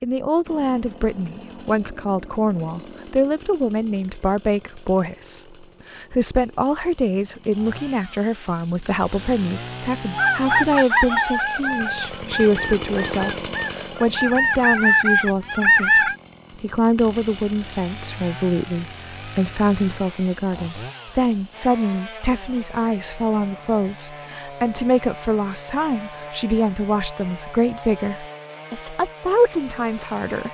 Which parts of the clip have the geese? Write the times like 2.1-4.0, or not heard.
10.2-16.1.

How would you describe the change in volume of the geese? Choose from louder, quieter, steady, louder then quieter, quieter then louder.
quieter then louder.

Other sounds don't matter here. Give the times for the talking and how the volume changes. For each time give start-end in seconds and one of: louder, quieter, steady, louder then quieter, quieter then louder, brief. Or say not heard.
0.0-30.5 steady.